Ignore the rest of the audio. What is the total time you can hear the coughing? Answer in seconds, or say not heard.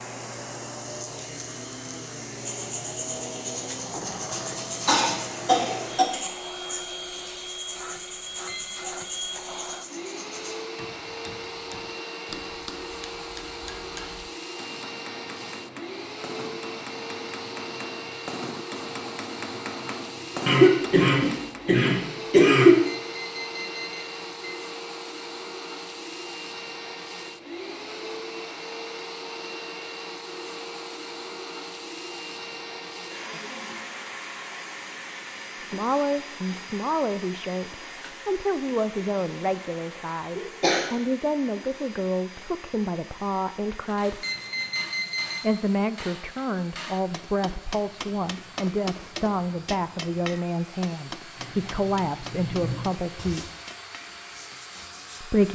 4 s.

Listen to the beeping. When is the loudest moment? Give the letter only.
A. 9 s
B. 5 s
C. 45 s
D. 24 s
C.